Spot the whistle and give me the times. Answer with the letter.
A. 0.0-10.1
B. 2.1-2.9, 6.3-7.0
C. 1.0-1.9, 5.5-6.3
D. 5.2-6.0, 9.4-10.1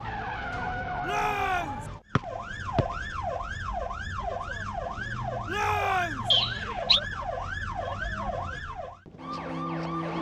B.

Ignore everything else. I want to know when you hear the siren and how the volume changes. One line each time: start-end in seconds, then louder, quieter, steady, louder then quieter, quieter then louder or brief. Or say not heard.
0.0-10.1 steady.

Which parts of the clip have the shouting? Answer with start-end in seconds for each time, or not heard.
1.0-1.9, 5.5-6.3.